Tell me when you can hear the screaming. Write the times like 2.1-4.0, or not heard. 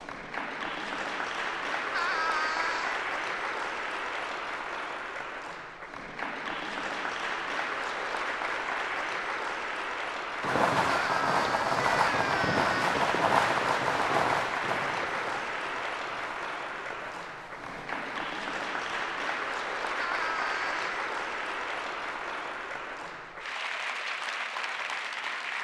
1.9-3.0, 10.9-12.8, 19.9-20.9.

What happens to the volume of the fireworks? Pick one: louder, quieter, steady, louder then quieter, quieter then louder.
quieter.